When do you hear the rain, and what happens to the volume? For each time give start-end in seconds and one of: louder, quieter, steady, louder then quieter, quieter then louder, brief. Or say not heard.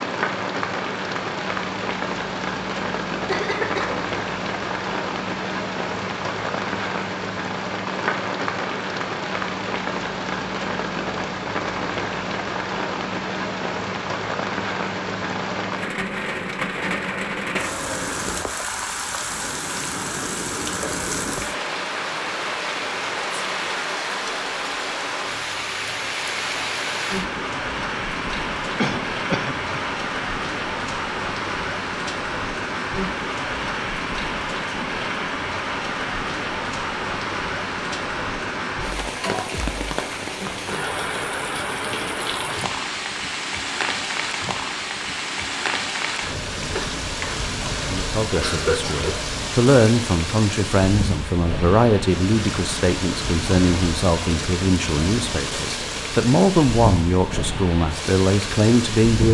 0.0-59.2 steady.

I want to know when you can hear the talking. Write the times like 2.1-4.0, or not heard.
47.9-59.2.